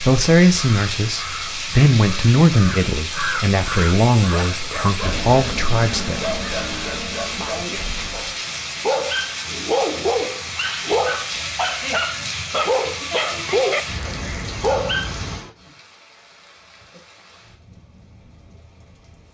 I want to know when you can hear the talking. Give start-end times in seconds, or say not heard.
0.0-6.3.